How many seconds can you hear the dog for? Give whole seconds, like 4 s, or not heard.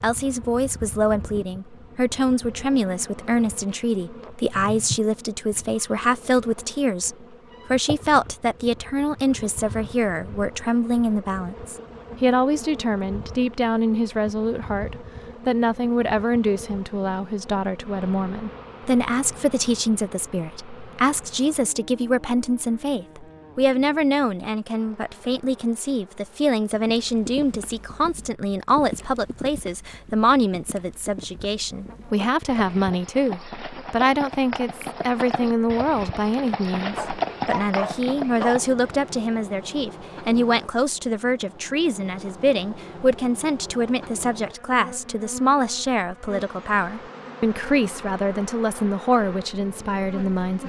2 s.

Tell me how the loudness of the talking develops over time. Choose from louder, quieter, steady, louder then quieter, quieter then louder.
steady.